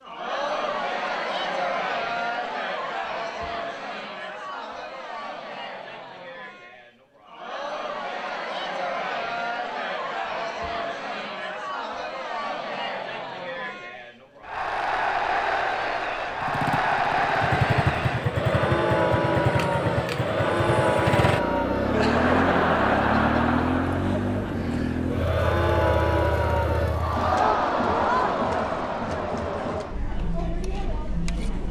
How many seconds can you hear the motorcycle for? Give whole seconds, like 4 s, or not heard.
11 s.